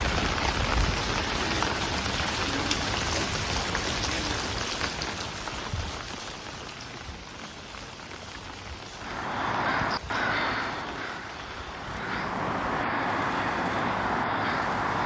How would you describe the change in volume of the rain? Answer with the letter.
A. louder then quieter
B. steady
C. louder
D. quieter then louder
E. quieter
E.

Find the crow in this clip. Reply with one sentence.
The crow can be heard from 8.9 to 15.0 s.